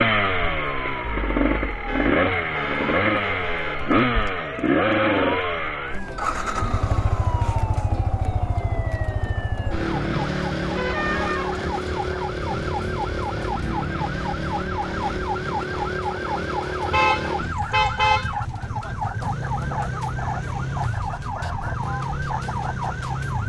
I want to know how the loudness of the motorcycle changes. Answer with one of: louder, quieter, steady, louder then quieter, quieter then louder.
quieter.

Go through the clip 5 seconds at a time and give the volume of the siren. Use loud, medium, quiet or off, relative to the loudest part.
medium, medium, loud, loud, loud.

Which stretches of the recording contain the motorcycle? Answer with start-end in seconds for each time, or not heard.
0.0-23.4.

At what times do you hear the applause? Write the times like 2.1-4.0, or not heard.
not heard.